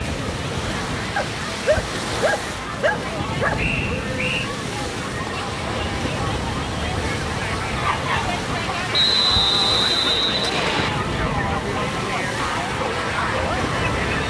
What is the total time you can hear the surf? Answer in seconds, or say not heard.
14 s.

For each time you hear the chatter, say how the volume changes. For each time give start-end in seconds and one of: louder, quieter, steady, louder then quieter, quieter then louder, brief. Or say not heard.
0.0-14.2 louder.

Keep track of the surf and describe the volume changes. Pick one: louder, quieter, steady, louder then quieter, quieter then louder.
steady.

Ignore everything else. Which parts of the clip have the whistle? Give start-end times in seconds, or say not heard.
3.5-4.5, 8.9-10.9.